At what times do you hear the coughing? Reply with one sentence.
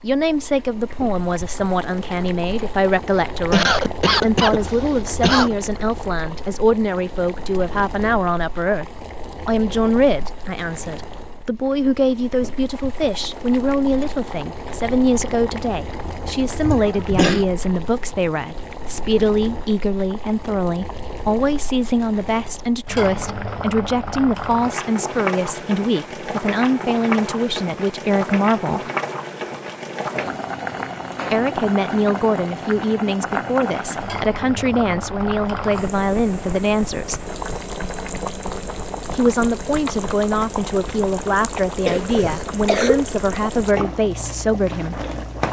You can hear the coughing from 3.5 to 5.5 s, from 16.6 to 17.4 s and from 41.9 to 43.0 s.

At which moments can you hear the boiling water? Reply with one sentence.
You can hear the boiling water from 0.0 to 45.4 s.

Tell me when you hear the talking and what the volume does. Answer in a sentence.
You can hear the talking from 0.0 to 8.8 s, at a steady volume; from 9.4 to 28.9 s, at a steady volume; from 31.3 to 37.2 s, at a steady volume; and from 39.1 to 45.0 s, at a steady volume.